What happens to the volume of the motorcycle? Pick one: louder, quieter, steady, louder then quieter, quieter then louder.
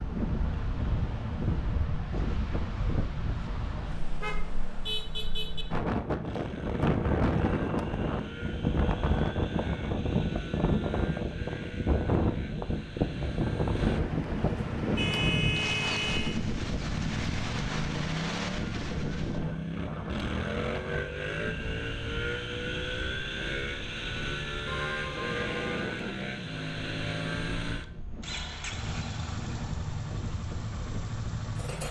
louder.